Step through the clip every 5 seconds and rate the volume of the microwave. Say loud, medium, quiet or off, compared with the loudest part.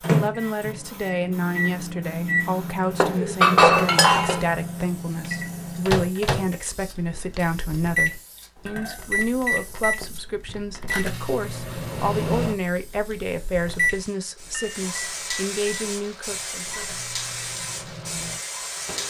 loud, loud, loud, quiet.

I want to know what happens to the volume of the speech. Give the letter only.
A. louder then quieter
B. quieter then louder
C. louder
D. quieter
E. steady
E.